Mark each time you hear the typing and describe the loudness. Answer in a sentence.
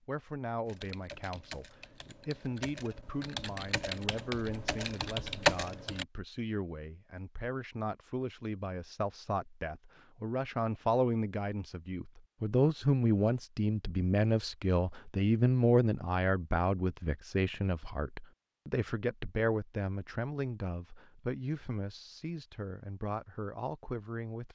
The typing can be heard from 0.7 to 6.0 s, getting louder.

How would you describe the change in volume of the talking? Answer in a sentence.
The volume of the talking goes up, then down.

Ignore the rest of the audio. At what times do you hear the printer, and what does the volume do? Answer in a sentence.
The printer can't be heard in this clip.